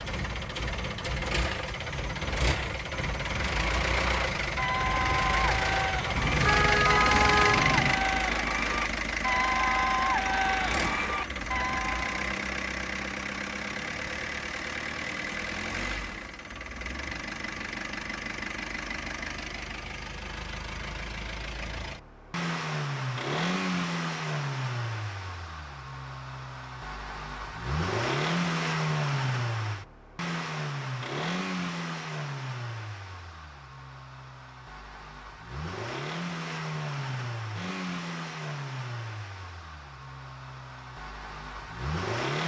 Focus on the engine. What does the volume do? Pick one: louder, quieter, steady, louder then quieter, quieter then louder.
quieter.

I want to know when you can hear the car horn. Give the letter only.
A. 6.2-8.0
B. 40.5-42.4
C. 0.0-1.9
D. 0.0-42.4
A.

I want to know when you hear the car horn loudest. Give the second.
7 s.